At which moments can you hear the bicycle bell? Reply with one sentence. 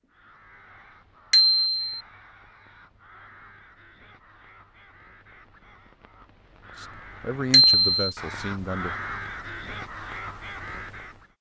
The bicycle bell can be heard from 1.3 to 2.0 s and from 7.5 to 8.1 s.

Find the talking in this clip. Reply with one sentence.
The talking can be heard from 6.8 to 8.9 s.